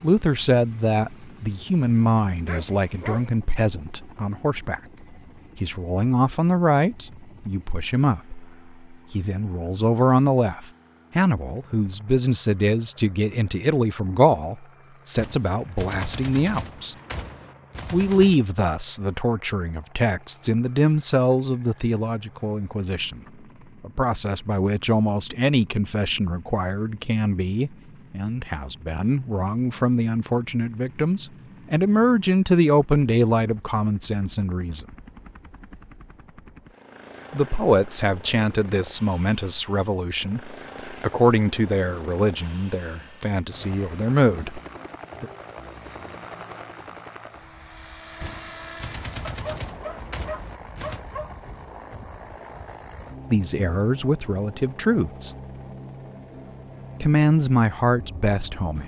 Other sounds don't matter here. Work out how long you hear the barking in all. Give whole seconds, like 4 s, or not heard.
3 s.